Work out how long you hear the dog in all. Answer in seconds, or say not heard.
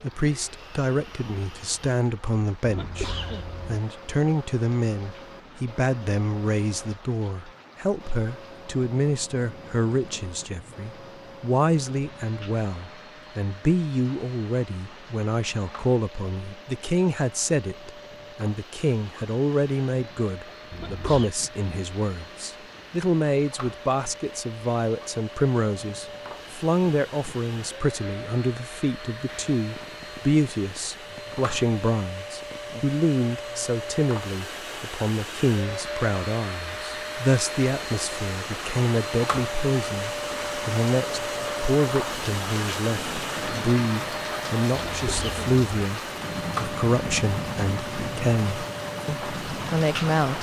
not heard.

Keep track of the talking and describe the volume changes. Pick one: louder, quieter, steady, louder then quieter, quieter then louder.
steady.